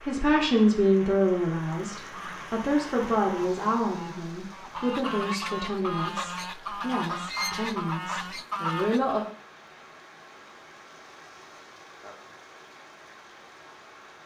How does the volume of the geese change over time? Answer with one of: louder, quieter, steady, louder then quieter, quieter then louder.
louder.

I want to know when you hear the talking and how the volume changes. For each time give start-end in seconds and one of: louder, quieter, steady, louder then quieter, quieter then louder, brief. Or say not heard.
0.0-9.2 quieter.